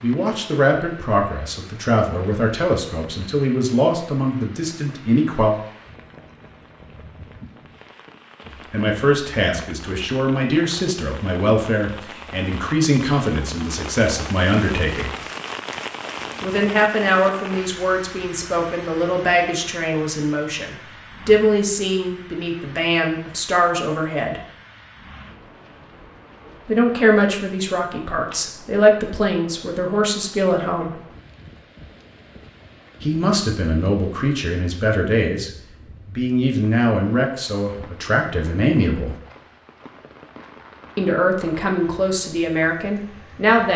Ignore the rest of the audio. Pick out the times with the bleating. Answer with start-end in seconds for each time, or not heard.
not heard.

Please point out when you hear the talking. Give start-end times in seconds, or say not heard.
0.0-5.5, 8.7-15.1, 16.4-24.4, 26.6-30.9, 33.0-39.1, 41.0-43.7.